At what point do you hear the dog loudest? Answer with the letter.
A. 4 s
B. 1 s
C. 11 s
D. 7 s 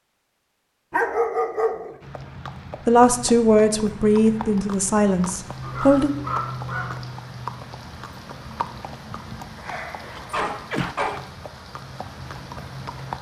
B.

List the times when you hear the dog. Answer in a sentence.
You can hear the dog from 0.9 to 1.9 s, from 5.6 to 7.0 s and from 9.6 to 11.2 s.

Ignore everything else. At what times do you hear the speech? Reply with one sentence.
The speech can be heard from 2.9 to 6.2 s.